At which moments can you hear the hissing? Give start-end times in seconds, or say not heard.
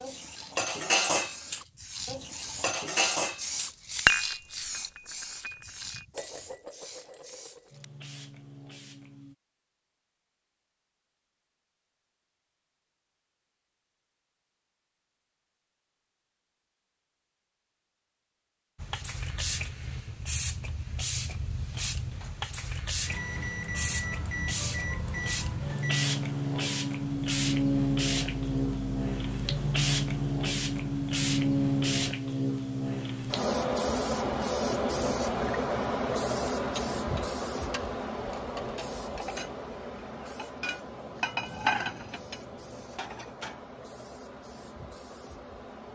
0.0-9.3, 18.8-45.9.